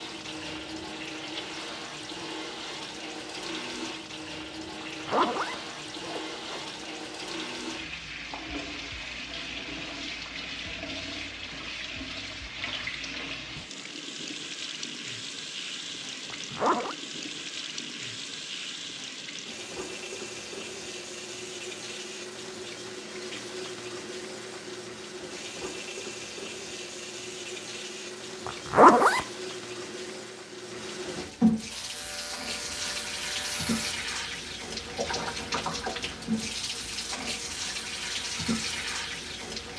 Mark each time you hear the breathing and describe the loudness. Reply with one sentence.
The breathing can't be heard in this clip.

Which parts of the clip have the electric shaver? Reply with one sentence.
You can hear the electric shaver from 31.7 to 34.0 s.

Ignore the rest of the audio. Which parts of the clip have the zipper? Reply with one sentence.
The zipper can be heard from 4.8 to 6.7 s, from 16.3 to 16.9 s and from 28.4 to 29.2 s.